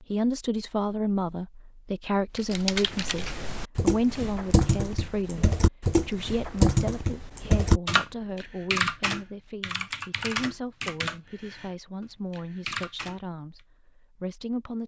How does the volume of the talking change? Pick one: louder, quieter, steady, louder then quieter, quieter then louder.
quieter.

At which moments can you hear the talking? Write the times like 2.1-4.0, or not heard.
0.0-14.8.